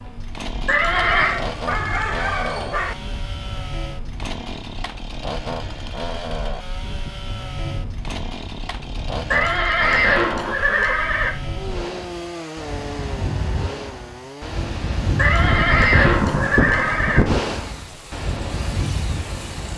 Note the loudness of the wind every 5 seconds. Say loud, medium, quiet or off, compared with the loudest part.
quiet, quiet, medium, loud.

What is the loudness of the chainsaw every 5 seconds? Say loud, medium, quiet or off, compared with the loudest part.
loud, loud, loud, medium.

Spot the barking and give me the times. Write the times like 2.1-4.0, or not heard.
0.9-3.0.